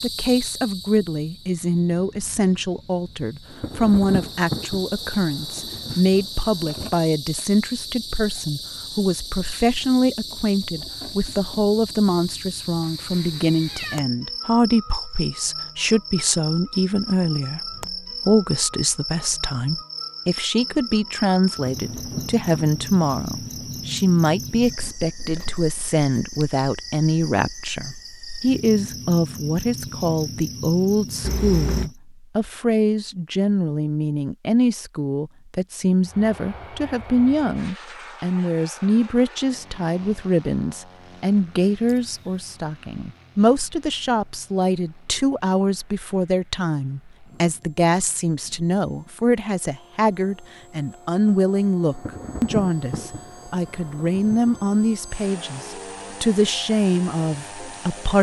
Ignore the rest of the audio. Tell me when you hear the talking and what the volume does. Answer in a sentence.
The talking can be heard from 0.0 to 58.1 s, at a steady volume.